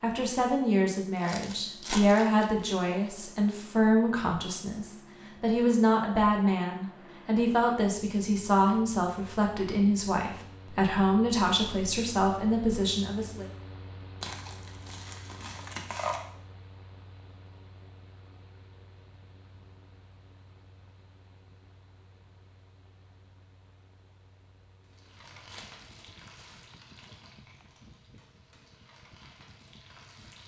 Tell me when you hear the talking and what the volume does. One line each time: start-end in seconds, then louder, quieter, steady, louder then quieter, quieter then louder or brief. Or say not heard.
0.0-13.4 steady.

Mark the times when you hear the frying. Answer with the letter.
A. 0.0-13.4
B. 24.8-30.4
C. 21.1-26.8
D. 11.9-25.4
B.